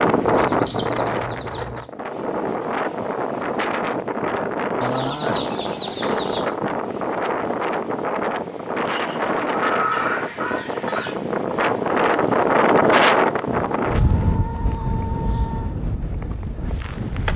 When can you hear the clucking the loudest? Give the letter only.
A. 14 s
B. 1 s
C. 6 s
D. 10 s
D.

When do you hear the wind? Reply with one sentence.
The wind can be heard from 0.0 to 17.3 s.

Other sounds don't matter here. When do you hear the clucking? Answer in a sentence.
You can hear the clucking from 0.2 to 1.9 s, from 4.8 to 6.5 s, from 8.8 to 11.2 s and from 13.4 to 15.8 s.